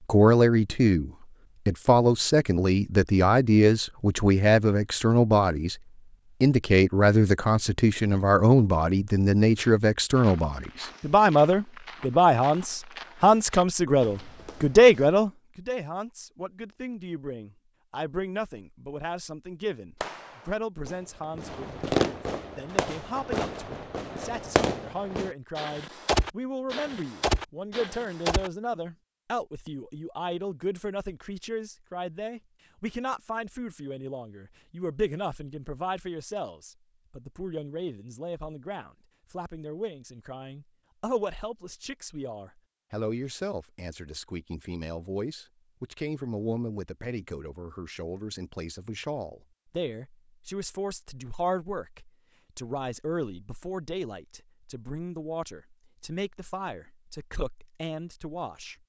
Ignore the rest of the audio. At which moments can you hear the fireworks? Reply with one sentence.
The fireworks can be heard from 20.0 to 28.5 s.